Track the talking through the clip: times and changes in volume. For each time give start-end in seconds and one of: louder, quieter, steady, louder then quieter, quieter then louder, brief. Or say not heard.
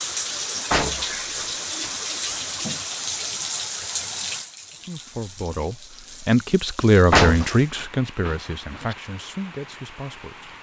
4.8-10.5 louder then quieter.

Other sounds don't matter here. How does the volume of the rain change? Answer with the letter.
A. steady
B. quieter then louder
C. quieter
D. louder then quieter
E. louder
C.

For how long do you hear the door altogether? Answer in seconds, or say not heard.
4 s.